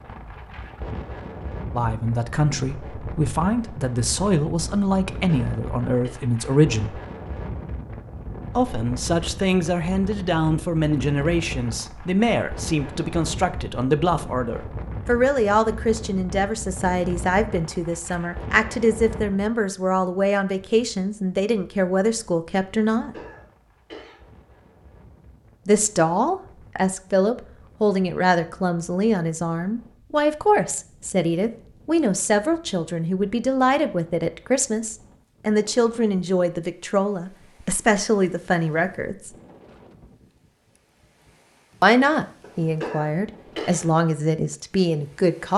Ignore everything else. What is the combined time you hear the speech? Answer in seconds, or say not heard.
37 s.